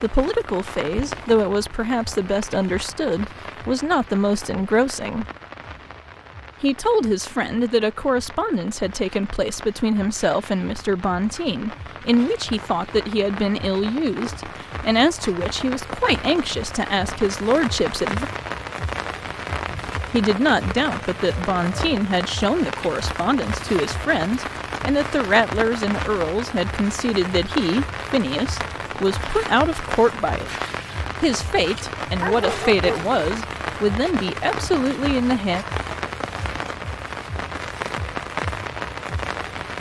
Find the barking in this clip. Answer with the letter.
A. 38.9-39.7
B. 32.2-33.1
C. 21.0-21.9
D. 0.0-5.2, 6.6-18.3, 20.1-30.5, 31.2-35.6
B.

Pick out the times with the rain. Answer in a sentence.
You can hear the rain from 0.0 to 39.7 s.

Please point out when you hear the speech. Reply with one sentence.
The speech can be heard from 0.0 to 5.2 s, from 6.6 to 18.3 s, from 20.1 to 30.5 s and from 31.2 to 35.6 s.